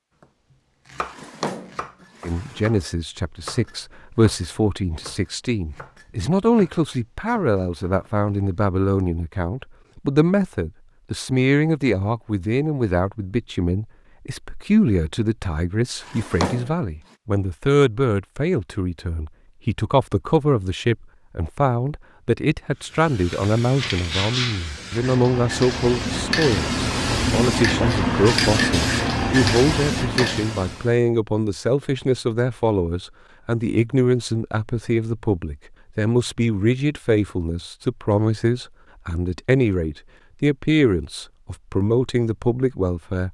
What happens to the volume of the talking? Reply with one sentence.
The volume of the talking stays about the same.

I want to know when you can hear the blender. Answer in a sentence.
The blender can't be heard in this clip.